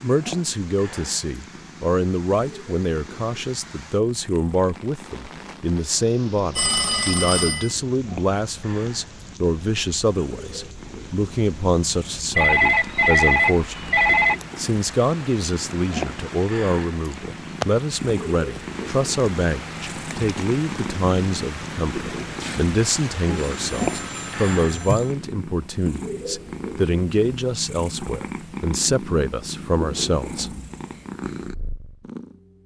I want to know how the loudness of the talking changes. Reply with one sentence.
The loudness of the talking stays about the same.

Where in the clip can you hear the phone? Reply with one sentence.
You can hear the phone from 6.5 to 7.8 s, from 12.3 to 14.4 s and from 23.2 to 25.1 s.